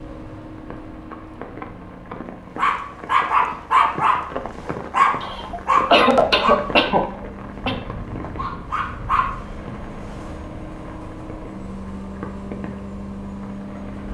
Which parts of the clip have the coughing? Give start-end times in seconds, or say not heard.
5.2-7.8.